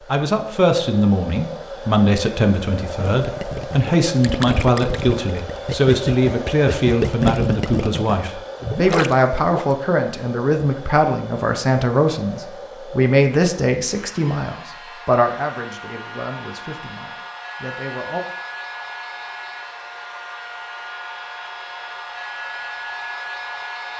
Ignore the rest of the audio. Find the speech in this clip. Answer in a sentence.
You can hear the speech from 0.1 to 18.2 s.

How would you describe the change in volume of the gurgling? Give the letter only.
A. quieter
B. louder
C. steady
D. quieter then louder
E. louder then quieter
E.